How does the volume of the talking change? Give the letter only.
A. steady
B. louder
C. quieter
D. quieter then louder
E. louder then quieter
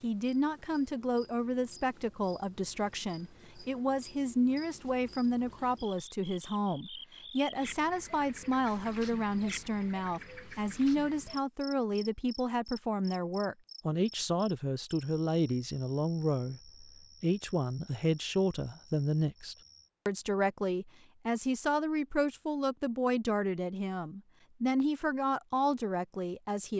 A.